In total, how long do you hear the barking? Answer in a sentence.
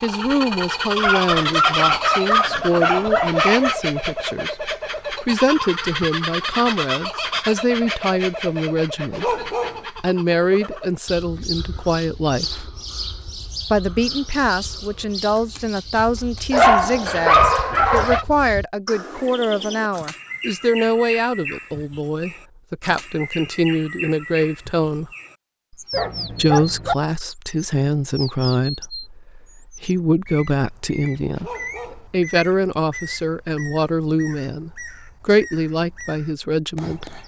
The barking can be heard for 7 seconds in total.